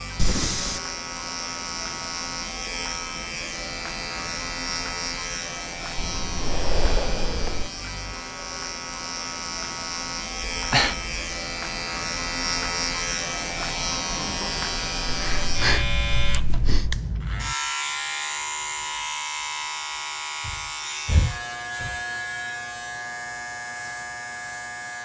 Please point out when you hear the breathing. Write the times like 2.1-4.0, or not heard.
0.1-0.8, 6.0-7.7, 10.5-11.1, 15.1-17.0, 20.4-21.9.